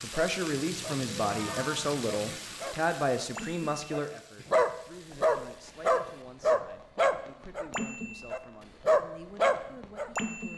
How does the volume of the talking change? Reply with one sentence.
The volume of the talking goes down.